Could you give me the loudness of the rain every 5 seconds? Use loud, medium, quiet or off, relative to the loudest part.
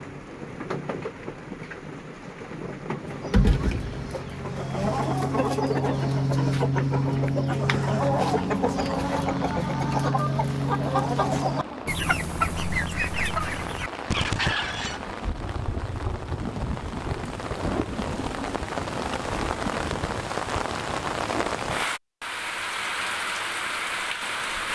medium, medium, medium, loud, loud.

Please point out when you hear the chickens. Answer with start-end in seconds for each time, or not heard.
3.0-15.1.